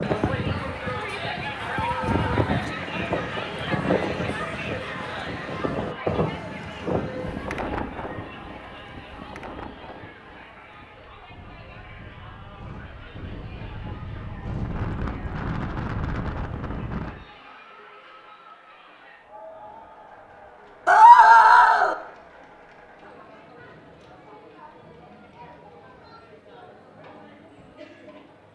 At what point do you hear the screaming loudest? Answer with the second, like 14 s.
21 s.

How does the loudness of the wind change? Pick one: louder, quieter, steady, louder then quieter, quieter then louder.
quieter then louder.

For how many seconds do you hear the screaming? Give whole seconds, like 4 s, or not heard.
2 s.